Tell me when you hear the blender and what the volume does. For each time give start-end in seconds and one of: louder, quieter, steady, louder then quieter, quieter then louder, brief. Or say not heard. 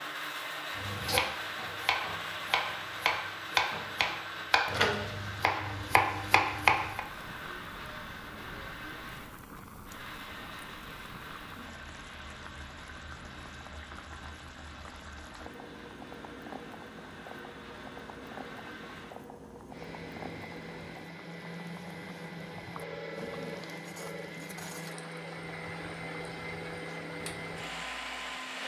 0.0-28.6 quieter then louder.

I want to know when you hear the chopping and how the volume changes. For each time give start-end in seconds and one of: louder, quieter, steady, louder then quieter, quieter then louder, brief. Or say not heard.
0.8-7.0 steady.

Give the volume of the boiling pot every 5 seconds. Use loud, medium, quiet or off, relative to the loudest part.
off, loud, loud, loud, loud, loud.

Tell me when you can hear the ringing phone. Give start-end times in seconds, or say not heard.
22.8-24.3.